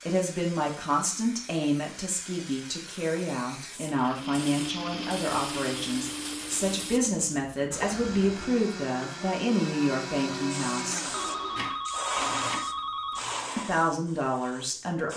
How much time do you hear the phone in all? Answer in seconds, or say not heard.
2 s.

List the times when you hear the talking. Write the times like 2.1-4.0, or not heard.
0.1-11.1, 13.6-15.1.